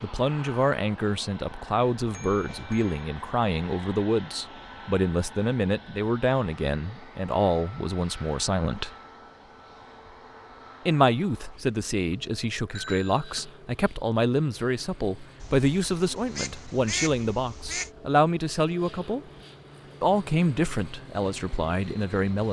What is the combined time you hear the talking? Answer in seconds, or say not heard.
20 s.